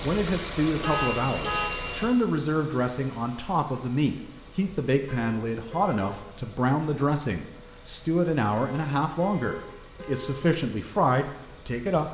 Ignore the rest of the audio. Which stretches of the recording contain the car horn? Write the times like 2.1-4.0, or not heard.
0.8-2.1, 5.0-6.2, 8.6-10.4.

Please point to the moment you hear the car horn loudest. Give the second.
1 s.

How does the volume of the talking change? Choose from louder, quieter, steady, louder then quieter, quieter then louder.
steady.